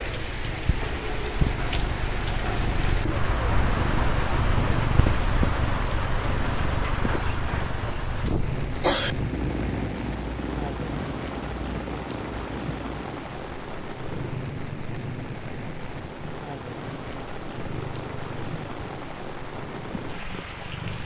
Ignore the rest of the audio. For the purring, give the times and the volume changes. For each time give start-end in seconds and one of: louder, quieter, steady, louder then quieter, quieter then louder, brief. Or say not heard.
0.0-21.0 quieter.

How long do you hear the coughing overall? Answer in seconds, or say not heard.
2 s.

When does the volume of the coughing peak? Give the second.
9 s.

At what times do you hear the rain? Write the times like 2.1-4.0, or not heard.
0.0-21.0.